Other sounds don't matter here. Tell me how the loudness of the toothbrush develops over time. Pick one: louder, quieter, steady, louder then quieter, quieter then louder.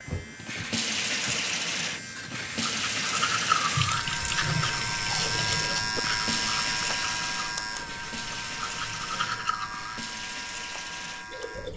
quieter then louder.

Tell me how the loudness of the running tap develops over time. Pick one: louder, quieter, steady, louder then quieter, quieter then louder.
quieter.